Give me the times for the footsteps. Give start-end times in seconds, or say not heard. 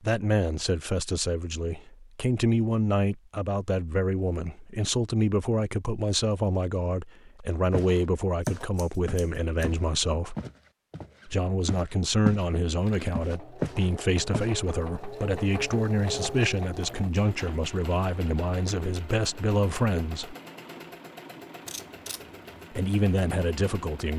7.3-12.4, 13.2-14.6.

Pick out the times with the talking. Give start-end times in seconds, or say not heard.
0.0-10.3, 11.2-20.4, 22.7-24.1.